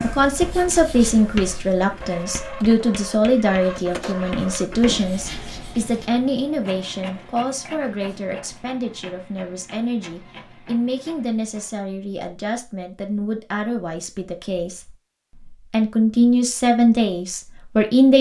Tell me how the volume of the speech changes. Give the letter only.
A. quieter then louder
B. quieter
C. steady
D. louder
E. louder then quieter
A.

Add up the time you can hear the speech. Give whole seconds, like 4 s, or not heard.
18 s.